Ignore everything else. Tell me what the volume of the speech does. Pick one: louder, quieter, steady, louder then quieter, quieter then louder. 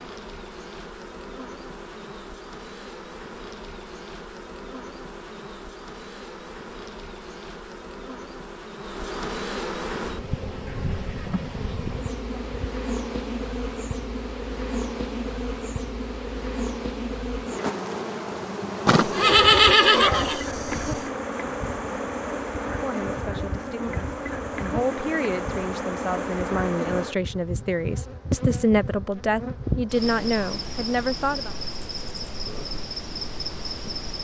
louder.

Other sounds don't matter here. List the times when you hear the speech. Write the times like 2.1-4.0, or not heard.
22.8-31.5.